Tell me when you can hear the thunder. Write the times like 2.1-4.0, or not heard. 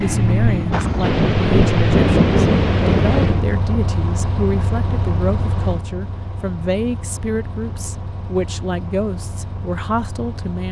0.7-3.5.